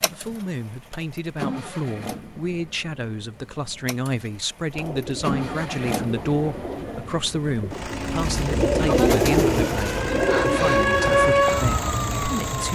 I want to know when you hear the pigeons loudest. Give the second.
9 s.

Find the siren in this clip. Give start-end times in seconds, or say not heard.
9.3-12.7.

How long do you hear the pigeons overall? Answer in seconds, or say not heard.
7 s.